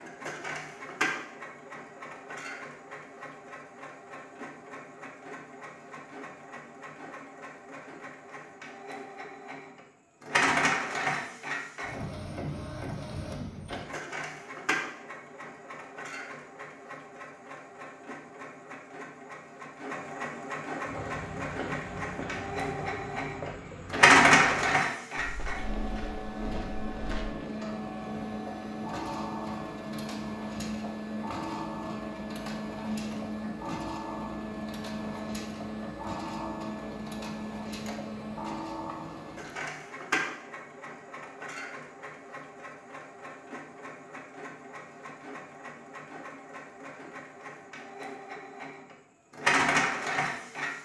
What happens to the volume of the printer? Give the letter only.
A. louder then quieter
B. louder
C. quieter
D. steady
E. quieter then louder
A.